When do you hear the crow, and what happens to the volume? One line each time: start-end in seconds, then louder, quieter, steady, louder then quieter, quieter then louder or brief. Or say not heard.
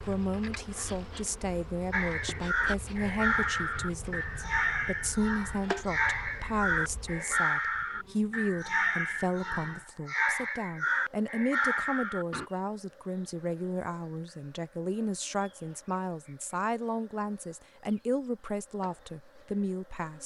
1.9-12.4 steady.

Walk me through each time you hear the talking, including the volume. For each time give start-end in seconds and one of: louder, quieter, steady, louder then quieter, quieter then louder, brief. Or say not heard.
0.1-20.2 steady.